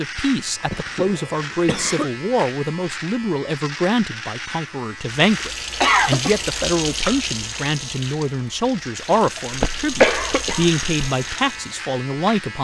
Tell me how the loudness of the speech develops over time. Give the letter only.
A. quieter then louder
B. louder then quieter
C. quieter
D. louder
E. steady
E.